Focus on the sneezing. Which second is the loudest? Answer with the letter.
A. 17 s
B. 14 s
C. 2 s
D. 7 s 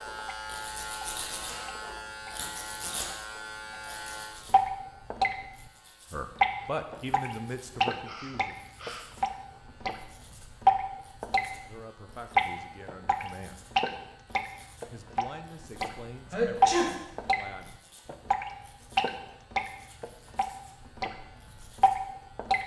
A.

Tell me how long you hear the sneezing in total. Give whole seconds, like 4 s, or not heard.
3 s.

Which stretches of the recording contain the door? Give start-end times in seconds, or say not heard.
not heard.